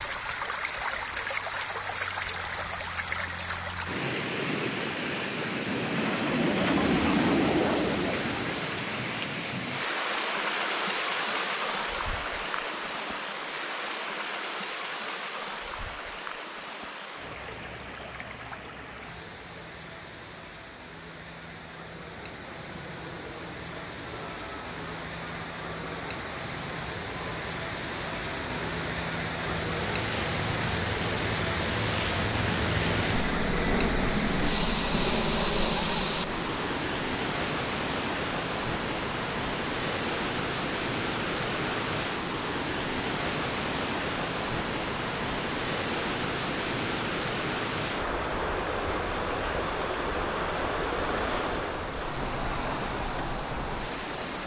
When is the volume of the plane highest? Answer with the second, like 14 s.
7 s.